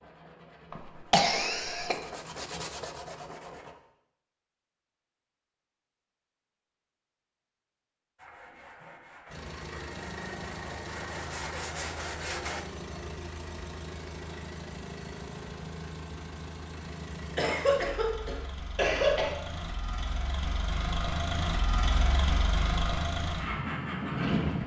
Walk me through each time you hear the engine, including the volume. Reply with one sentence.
The engine can be heard from 9.2 to 24.6 s, getting louder.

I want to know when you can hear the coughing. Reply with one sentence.
You can hear the coughing from 0.7 to 1.9 s and from 17.4 to 19.3 s.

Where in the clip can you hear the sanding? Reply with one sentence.
You can hear the sanding from 0.0 to 3.8 s and from 8.2 to 12.7 s.